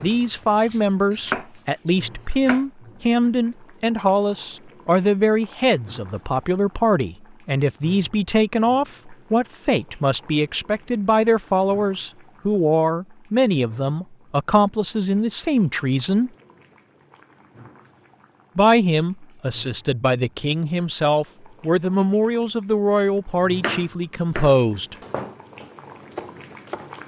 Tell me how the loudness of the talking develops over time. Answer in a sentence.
The loudness of the talking stays about the same.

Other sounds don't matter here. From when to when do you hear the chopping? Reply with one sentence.
The chopping can be heard from 0.0 to 2.6 s and from 23.6 to 26.9 s.